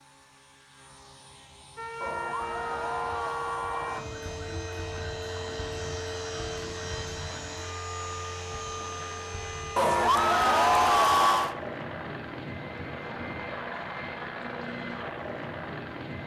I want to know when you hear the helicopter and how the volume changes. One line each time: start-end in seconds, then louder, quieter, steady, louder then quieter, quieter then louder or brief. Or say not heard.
0.0-16.2 louder.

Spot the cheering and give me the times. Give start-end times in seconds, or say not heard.
2.0-4.0, 9.8-11.6.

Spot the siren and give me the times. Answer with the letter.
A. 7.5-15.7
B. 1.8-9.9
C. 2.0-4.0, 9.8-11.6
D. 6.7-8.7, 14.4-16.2
B.